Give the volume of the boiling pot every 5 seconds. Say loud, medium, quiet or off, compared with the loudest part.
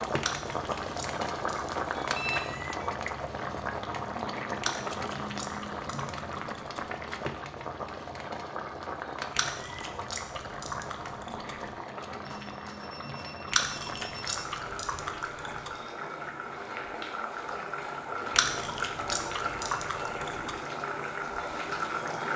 loud, loud, medium, loud, loud.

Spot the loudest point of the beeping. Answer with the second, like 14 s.
2 s.